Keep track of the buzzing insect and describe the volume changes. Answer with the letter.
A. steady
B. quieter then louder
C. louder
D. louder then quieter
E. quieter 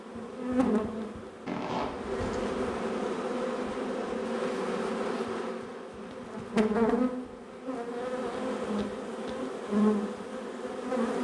A.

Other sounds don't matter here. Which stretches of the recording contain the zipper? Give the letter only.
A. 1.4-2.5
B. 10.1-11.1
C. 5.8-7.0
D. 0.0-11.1
A.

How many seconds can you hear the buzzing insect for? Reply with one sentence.
You can hear the buzzing insect for 11 seconds altogether.